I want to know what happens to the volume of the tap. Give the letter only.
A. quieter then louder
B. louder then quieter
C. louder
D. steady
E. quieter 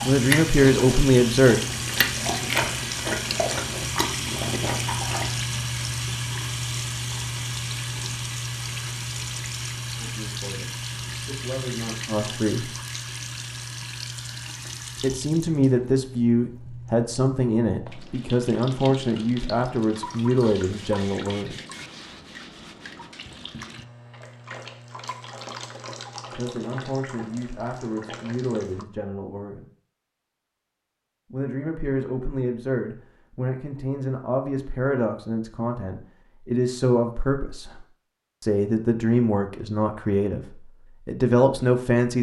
E.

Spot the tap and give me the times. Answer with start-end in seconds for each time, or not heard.
0.0-28.9.